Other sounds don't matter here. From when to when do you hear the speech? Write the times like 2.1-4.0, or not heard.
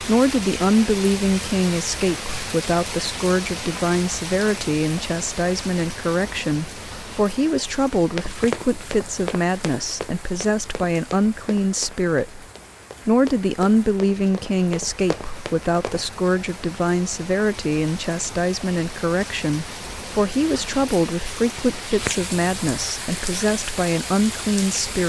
0.0-12.4, 13.1-25.0.